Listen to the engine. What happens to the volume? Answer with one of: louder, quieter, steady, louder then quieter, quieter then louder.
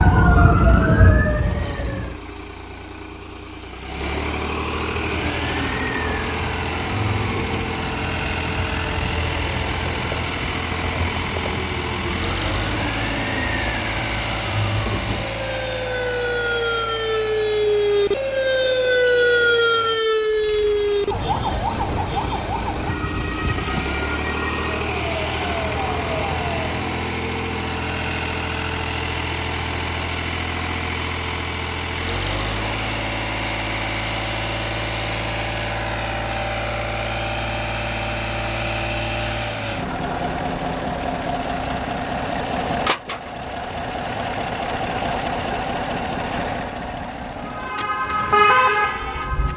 steady.